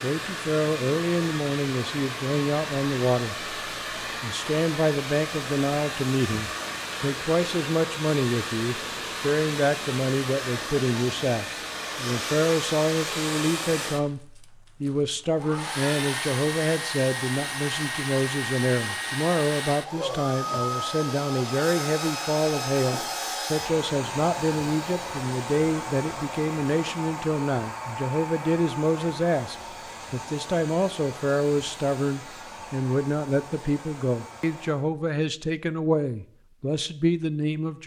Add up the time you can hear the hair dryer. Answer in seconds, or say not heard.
35 s.